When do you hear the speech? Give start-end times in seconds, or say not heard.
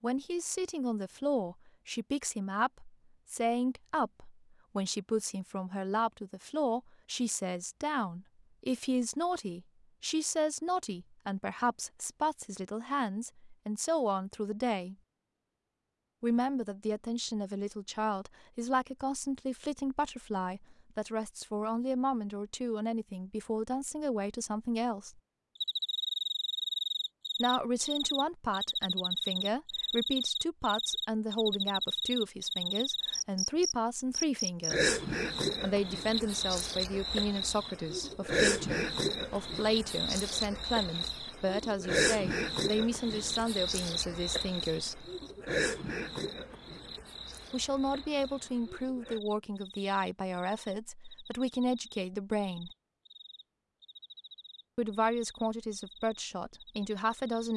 0.0-14.9, 16.2-25.2, 27.4-34.9, 35.6-45.1, 47.5-52.7, 54.8-57.5.